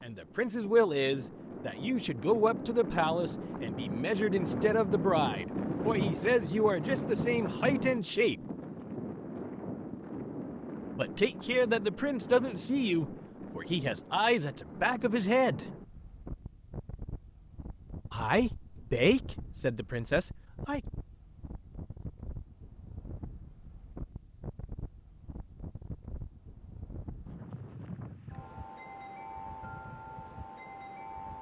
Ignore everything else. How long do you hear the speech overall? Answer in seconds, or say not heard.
16 s.